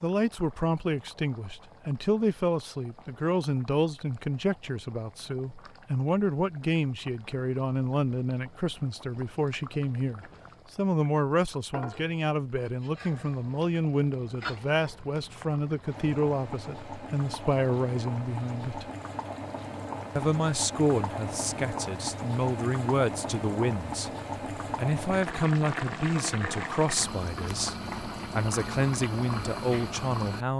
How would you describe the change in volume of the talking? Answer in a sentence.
The volume of the talking stays about the same.